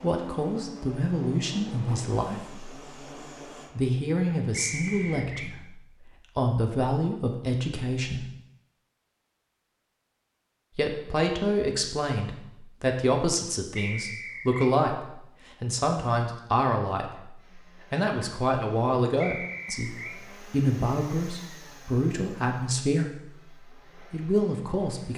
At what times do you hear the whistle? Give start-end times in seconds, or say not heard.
4.5-5.5, 13.8-14.8, 19.2-20.2.